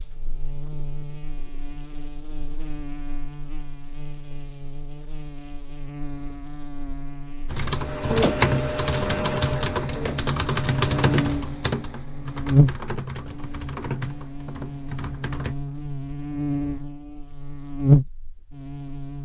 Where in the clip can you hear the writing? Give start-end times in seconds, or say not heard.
not heard.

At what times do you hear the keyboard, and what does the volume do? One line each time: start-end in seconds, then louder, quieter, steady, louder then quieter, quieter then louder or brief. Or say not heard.
7.5-15.6 quieter.